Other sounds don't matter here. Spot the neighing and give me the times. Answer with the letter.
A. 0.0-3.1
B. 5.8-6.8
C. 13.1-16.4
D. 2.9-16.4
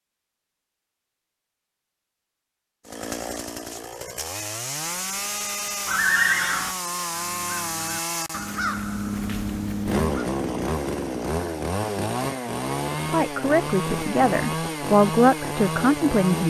B.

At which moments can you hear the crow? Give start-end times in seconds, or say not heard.
7.1-10.2.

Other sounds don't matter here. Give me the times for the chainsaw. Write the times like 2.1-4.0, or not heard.
2.9-16.4.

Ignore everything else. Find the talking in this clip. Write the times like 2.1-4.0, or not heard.
13.1-16.4.